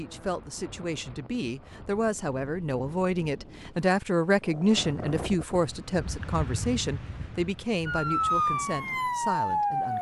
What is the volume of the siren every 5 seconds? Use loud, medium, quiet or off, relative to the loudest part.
off, loud.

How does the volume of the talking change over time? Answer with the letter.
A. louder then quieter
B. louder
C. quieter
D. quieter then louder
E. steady
A.